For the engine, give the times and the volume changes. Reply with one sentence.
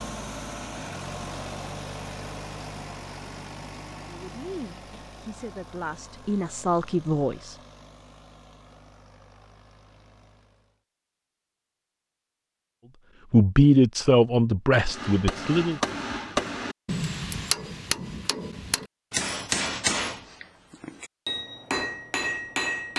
The engine can be heard from 0.0 to 10.8 s, getting quieter.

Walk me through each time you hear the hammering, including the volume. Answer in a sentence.
You can hear the hammering from 14.8 to 22.9 s, at a steady volume.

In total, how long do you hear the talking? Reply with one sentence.
The talking can be heard for 6 seconds in total.